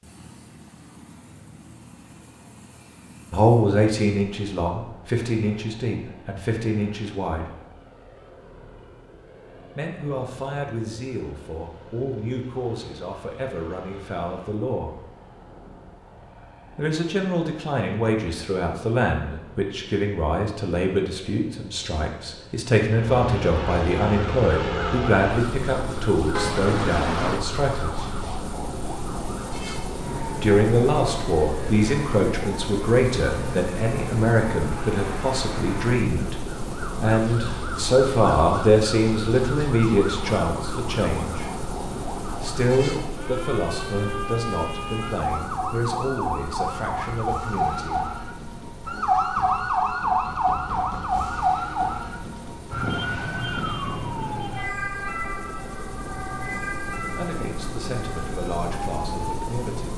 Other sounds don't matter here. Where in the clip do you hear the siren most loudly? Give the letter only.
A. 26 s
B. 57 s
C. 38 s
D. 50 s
D.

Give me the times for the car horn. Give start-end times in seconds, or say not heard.
26.3-27.4.